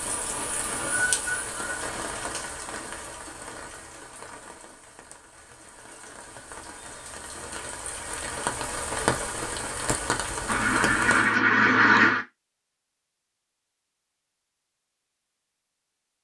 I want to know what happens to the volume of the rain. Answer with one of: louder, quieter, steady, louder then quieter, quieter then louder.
quieter then louder.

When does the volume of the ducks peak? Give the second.
12 s.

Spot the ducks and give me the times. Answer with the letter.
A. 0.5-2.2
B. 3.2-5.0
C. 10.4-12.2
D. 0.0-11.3
C.